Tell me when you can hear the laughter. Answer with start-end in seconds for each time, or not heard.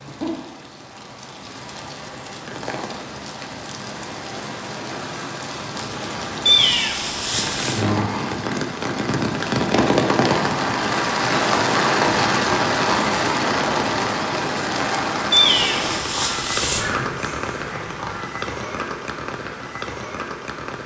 16.8-18.4.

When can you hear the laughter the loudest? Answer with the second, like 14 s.
17 s.